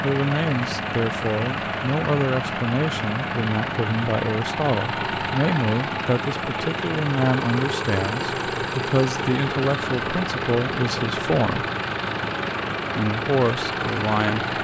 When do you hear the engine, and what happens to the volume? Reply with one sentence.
You can hear the engine from 0.0 to 14.6 s, at a steady volume.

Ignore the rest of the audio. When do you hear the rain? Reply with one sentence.
You can't hear the rain here.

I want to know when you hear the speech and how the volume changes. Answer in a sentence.
The speech can be heard from 0.0 to 11.7 s, at a steady volume; and briefly from 12.9 to 14.4 s.